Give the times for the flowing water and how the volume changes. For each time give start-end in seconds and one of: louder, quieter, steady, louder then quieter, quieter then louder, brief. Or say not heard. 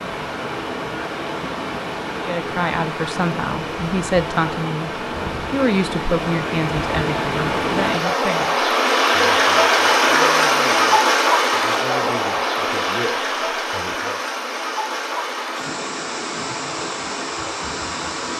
0.0-18.3 louder then quieter.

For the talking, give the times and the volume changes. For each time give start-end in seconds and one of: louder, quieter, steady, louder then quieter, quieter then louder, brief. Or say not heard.
2.1-4.9 brief
5.5-14.2 quieter.